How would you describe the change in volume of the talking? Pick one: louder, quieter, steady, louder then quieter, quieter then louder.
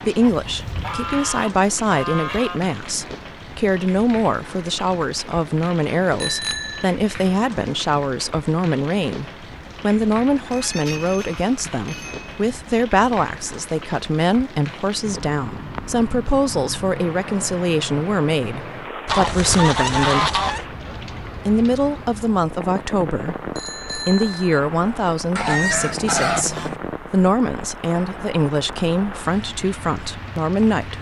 steady.